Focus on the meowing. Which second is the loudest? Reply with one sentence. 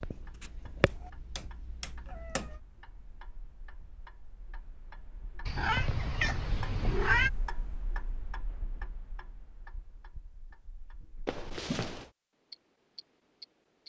The loudest moment of the meowing is at 7 seconds.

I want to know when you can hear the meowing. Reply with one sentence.
The meowing can be heard from 0.8 to 2.4 s, from 5.5 to 7.3 s and from 11.2 to 12.1 s.